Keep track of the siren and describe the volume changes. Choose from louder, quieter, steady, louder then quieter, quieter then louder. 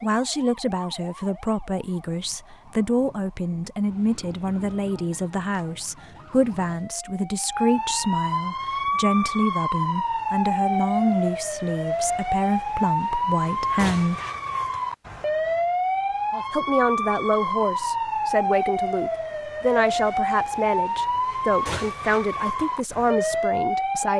louder.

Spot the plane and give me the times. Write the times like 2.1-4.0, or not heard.
not heard.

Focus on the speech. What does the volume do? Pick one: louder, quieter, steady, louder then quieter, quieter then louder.
steady.